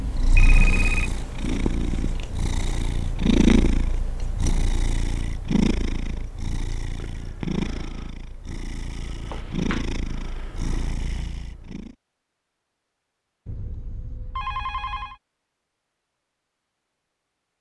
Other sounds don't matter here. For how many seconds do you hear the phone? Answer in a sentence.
You can hear the phone for 3 seconds altogether.